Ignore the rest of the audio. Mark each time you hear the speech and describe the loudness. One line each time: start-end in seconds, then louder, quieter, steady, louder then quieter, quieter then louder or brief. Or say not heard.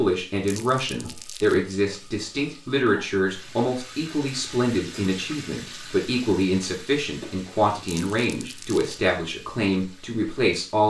0.0-10.8 steady.